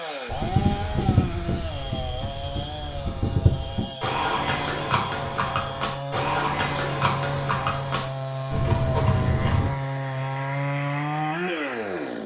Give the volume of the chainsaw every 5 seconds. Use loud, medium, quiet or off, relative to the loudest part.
medium, loud, loud.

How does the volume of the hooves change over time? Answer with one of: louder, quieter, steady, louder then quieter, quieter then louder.
steady.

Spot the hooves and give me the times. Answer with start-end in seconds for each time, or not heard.
0.2-9.7.